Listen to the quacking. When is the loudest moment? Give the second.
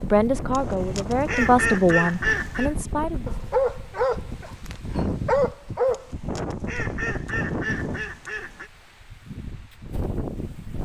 2 s.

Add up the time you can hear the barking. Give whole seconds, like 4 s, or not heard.
3 s.